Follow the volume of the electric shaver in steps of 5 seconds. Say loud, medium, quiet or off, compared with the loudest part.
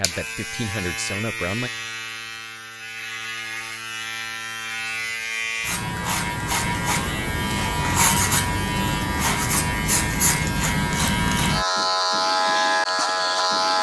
medium, loud, loud.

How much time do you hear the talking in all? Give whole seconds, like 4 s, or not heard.
2 s.